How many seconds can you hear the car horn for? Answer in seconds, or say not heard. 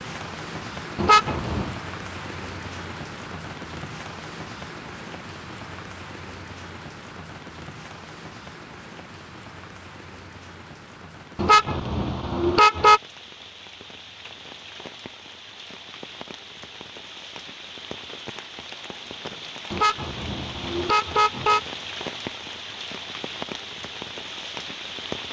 4 s.